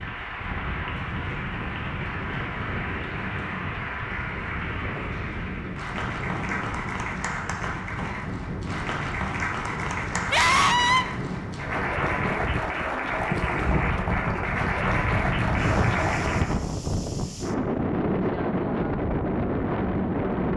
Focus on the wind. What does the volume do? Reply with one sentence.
The volume of the wind goes up.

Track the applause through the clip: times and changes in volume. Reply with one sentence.
You can hear the applause from 0.0 to 16.5 s, getting louder.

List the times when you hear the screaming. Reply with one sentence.
The screaming can be heard from 10.3 to 11.1 s.